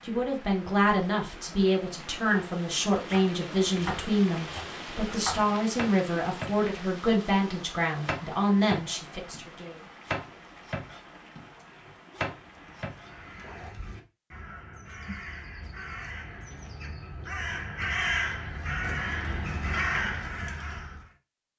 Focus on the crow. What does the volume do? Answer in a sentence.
The loudness of the crow goes up.